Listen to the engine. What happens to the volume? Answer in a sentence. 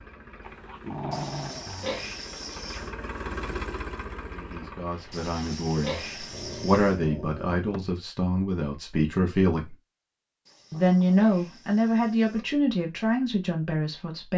The loudness of the engine goes up, then down.